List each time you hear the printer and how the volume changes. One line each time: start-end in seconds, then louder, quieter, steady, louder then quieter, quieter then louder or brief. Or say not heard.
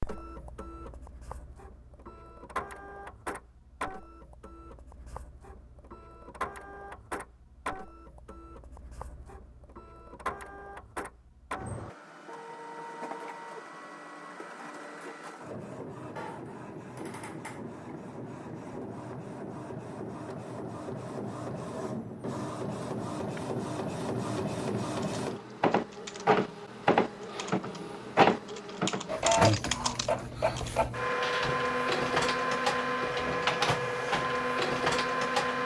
0.0-35.6 louder.